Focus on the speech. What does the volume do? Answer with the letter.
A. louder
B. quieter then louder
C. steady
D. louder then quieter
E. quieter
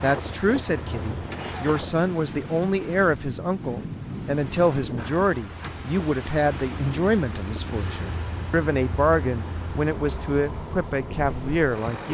C.